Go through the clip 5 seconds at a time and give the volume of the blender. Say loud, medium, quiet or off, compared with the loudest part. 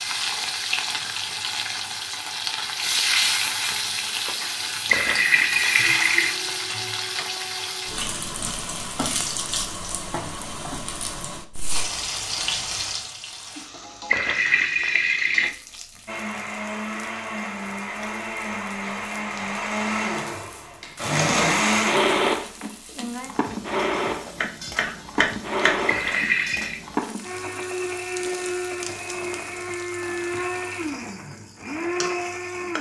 off, off, off, medium, loud, medium, medium.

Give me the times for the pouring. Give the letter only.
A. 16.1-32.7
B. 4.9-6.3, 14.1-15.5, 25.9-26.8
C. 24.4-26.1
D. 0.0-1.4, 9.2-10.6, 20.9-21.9
B.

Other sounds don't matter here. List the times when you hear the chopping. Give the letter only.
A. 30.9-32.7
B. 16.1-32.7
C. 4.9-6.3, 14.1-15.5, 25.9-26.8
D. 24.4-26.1
D.